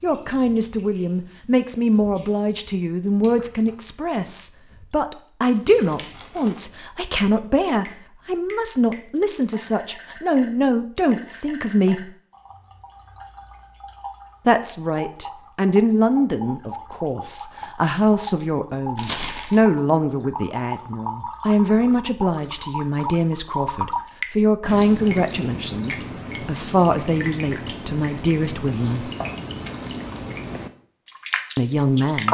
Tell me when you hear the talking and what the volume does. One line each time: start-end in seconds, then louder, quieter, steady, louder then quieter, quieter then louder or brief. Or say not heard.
0.0-12.1 steady
14.4-29.1 steady
31.6-32.3 brief.